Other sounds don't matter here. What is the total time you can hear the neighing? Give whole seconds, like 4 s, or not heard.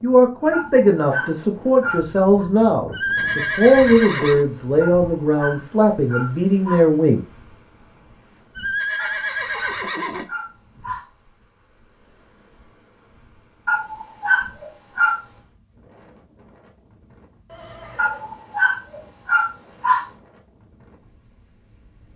4 s.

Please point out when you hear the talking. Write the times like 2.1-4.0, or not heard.
0.0-7.2.